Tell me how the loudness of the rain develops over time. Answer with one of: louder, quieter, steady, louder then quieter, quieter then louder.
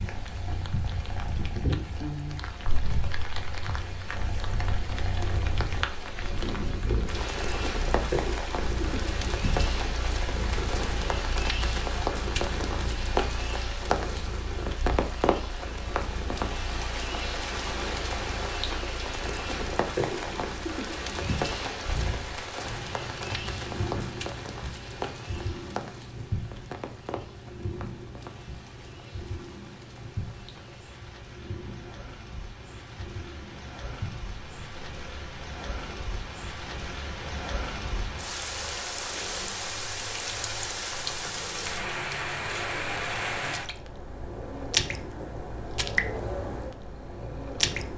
quieter then louder.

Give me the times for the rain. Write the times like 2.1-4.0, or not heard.
0.0-47.9.